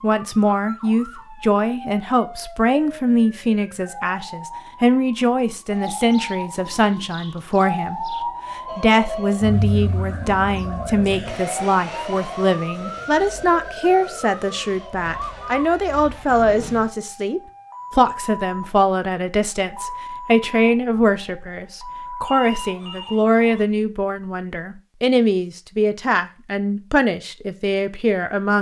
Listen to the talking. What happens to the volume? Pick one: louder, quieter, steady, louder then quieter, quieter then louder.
steady.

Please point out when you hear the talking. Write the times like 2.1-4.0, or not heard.
0.0-8.2, 8.8-28.5.